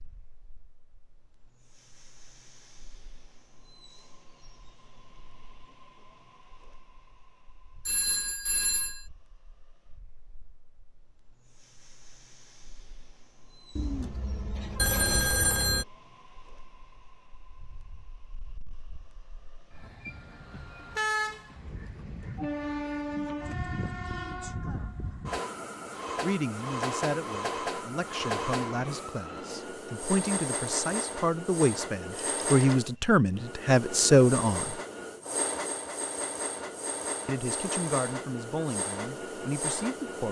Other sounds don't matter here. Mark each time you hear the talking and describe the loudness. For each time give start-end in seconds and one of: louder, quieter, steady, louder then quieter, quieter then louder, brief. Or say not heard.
26.2-34.8 louder
37.2-40.2 brief.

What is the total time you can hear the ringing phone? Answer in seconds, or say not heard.
3 s.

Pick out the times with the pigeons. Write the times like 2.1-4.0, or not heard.
13.8-15.3.